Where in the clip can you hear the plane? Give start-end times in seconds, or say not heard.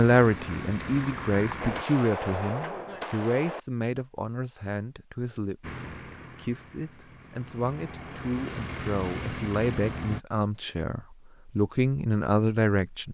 0.0-1.9, 5.6-10.2.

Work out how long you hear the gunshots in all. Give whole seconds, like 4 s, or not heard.
2 s.